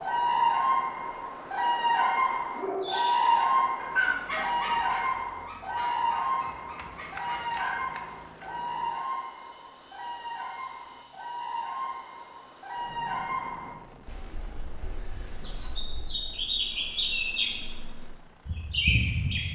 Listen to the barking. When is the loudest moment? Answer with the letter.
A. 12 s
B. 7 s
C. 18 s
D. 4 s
D.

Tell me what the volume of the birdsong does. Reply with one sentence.
The loudness of the birdsong goes down, then up.